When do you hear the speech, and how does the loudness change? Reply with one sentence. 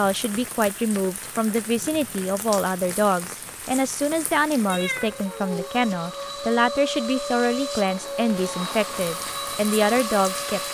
The speech can be heard from 0.0 to 10.6 s, at a steady volume.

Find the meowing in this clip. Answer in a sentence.
You can hear the meowing from 4.7 to 5.7 s.